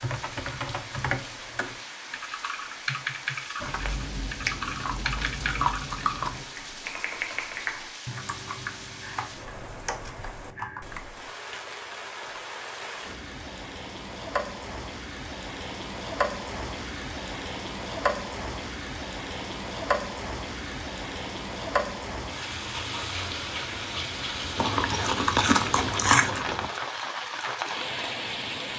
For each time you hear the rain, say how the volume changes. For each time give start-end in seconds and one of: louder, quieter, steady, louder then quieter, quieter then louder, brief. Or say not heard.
0.0-28.7 louder.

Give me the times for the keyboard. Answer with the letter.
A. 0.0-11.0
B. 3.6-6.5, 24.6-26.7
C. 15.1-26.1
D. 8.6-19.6
A.